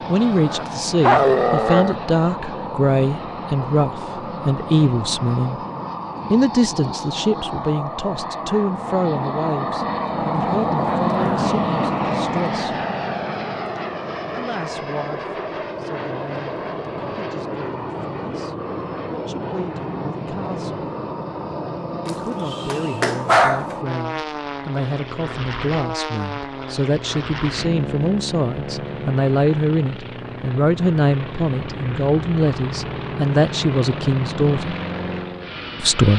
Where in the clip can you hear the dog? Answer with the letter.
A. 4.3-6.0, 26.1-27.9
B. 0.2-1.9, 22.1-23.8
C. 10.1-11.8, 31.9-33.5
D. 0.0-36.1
B.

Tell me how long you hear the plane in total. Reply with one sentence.
You can hear the plane for 36 seconds altogether.